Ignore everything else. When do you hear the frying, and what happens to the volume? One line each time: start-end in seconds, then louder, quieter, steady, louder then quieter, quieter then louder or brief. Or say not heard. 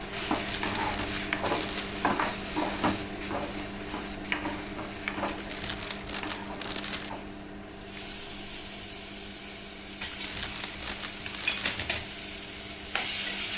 0.0-13.5 quieter then louder.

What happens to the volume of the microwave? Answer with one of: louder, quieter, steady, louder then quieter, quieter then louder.
quieter.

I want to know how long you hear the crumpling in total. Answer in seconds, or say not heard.
5 s.